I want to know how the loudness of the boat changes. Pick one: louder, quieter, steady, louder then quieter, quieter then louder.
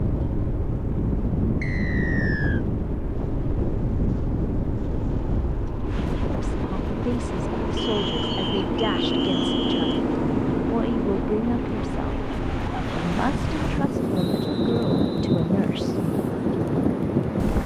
louder then quieter.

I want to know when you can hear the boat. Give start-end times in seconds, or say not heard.
0.0-17.6.